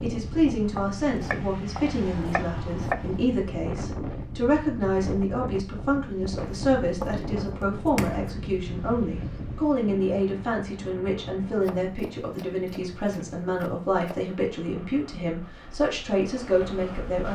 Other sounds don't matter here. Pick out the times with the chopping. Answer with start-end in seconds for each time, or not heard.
0.7-3.2, 6.3-8.3, 11.6-14.3.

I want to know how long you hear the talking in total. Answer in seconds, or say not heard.
17 s.